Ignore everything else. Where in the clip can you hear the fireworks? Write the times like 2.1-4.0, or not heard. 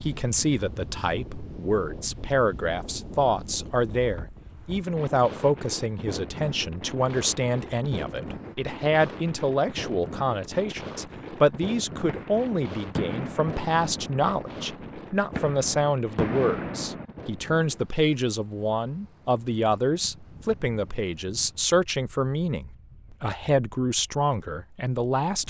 11.9-17.1.